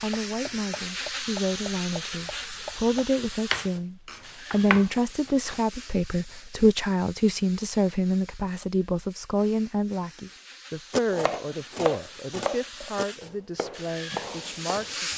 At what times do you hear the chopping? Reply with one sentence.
You can hear the chopping from 0.0 to 5.6 s and from 10.9 to 15.1 s.